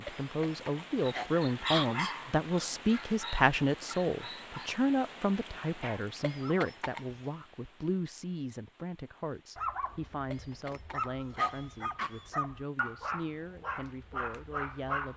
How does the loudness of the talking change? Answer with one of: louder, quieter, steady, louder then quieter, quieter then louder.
quieter.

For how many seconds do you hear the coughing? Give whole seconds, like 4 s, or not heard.
5 s.